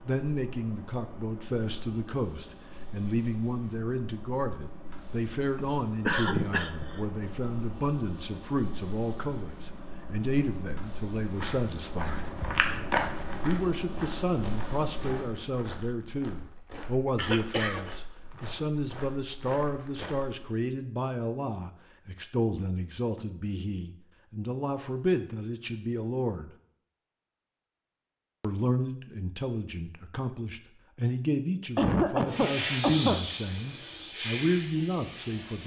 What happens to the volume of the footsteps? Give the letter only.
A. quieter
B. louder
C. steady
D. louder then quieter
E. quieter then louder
A.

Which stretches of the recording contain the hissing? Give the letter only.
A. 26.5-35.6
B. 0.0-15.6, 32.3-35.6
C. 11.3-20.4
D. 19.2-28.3
B.